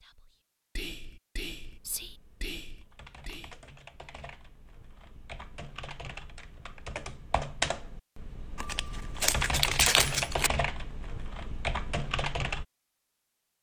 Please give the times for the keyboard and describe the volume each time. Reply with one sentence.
The keyboard can be heard from 1.6 to 12.7 s, getting louder.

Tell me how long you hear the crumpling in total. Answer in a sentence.
The crumpling can be heard for 2 seconds in total.